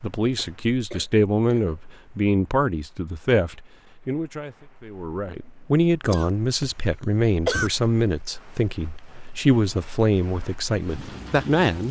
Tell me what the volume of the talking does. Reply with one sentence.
The loudness of the talking stays about the same.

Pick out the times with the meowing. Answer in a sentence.
The meowing can't be heard in this clip.